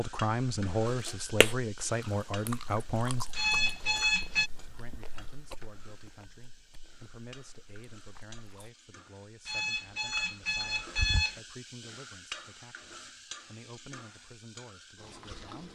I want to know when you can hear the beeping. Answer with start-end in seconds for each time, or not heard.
3.4-4.5, 9.4-11.4.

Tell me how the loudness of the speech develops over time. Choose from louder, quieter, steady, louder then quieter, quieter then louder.
quieter.